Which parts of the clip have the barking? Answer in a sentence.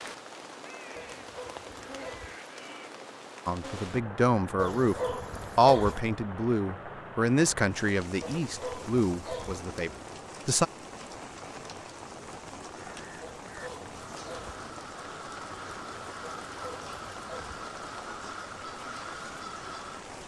The barking can be heard from 0.9 to 2.4 s, from 4.5 to 6.0 s, from 8.2 to 9.7 s, from 13.2 to 14.6 s and from 16.2 to 17.6 s.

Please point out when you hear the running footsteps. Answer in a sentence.
You can't hear the running footsteps here.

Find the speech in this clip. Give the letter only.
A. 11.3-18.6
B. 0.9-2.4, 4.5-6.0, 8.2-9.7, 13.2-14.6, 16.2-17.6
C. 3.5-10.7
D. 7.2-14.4
C.